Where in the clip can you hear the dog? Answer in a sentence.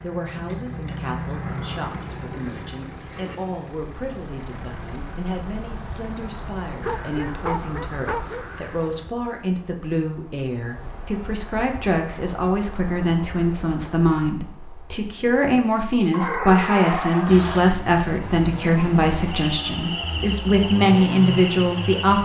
You can hear the dog from 6.8 to 8.9 s and from 16.1 to 17.6 s.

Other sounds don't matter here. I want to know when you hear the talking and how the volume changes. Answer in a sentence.
You can hear the talking from 0.0 to 22.2 s, getting louder.